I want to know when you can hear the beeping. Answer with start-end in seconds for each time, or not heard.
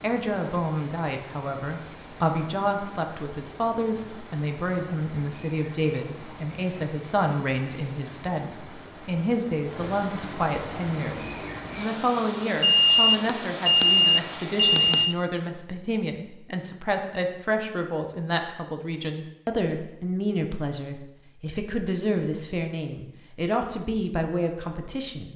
12.6-15.2.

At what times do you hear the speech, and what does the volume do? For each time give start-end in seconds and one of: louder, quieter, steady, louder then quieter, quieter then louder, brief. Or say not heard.
0.0-25.3 steady.